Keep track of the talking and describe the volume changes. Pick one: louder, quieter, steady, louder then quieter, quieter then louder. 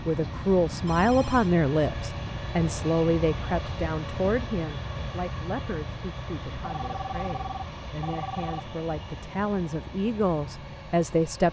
quieter then louder.